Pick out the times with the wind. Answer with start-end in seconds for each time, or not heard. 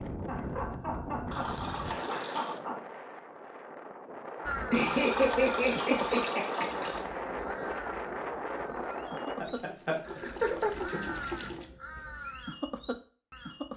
0.0-9.4.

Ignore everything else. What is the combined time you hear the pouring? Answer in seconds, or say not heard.
6 s.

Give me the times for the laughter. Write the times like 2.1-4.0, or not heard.
0.2-2.8, 4.7-6.8, 9.4-11.1.